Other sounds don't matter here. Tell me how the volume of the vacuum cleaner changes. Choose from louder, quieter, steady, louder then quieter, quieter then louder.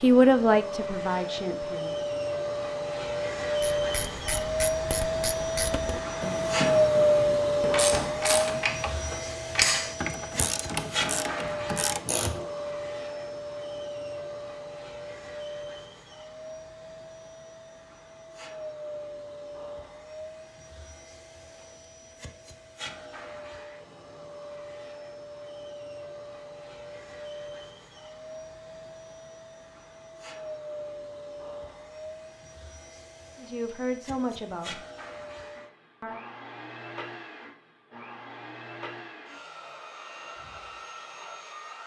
quieter.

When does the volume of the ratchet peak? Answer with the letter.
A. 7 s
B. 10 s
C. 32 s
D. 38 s
B.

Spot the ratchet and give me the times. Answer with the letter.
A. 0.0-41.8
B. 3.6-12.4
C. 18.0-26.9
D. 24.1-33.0
B.